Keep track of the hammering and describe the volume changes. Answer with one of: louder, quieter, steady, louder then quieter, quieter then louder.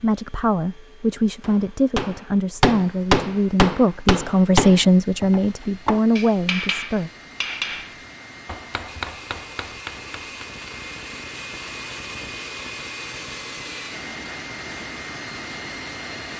quieter.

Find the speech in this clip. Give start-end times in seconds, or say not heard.
0.0-7.1.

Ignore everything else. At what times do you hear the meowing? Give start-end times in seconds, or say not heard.
not heard.